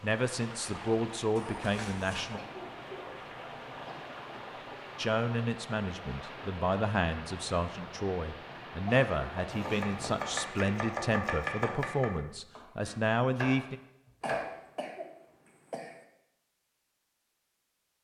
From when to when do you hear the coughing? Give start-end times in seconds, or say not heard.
2.4-4.2, 8.8-9.3, 14.2-16.0.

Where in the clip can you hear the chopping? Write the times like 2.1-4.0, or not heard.
9.6-14.4.